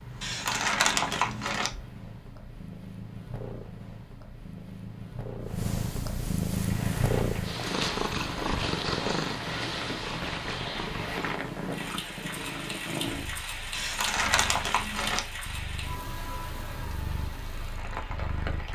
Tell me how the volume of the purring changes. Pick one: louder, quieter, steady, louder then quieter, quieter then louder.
louder then quieter.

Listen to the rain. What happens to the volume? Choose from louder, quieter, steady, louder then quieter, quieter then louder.
steady.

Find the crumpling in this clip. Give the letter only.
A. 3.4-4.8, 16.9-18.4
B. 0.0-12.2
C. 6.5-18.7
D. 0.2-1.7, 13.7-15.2
D.